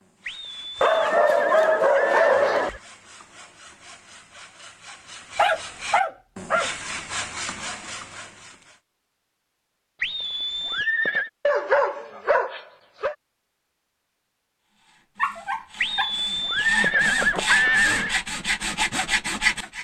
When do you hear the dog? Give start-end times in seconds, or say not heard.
0.8-2.8, 5.3-6.7, 11.4-13.2, 15.2-16.1.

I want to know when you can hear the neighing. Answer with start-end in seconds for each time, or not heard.
0.2-2.8, 10.0-11.3, 15.8-18.2.